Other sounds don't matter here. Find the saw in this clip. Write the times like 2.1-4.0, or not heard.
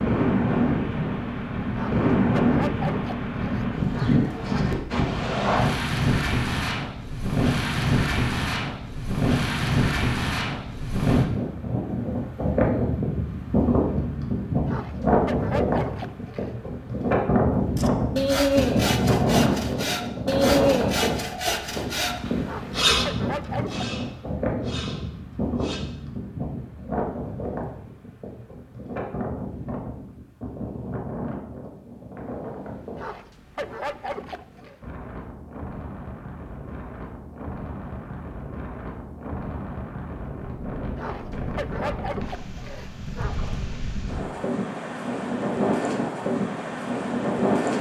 17.8-25.8.